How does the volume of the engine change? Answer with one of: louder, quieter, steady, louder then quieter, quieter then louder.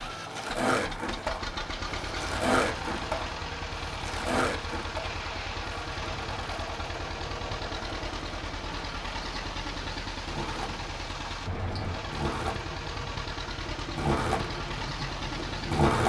steady.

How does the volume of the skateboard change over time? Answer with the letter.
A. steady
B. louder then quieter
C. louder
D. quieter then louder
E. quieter
D.